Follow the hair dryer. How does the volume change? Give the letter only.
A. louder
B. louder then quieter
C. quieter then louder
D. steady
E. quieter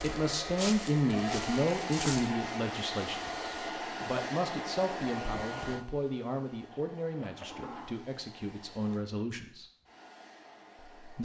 E.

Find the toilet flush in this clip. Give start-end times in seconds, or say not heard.
6.7-8.0.